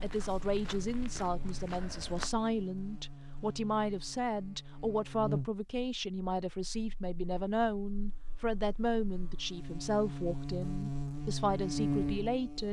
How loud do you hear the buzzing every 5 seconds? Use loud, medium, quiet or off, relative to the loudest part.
quiet, medium, loud.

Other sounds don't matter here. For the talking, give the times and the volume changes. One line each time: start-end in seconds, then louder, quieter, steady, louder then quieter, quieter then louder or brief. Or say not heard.
0.0-12.6 steady.